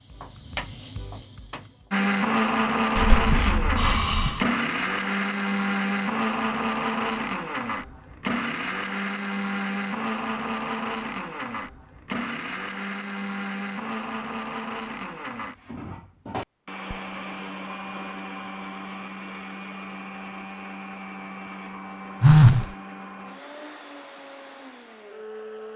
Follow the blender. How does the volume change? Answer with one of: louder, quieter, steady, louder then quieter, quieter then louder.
quieter.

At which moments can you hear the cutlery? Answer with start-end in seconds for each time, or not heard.
not heard.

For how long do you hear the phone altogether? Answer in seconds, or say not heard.
2 s.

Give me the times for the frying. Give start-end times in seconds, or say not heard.
0.0-1.9.